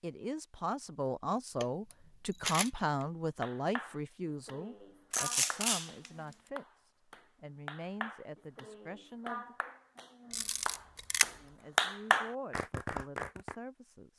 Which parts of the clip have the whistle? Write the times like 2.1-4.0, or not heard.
not heard.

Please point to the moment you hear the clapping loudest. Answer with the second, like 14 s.
12 s.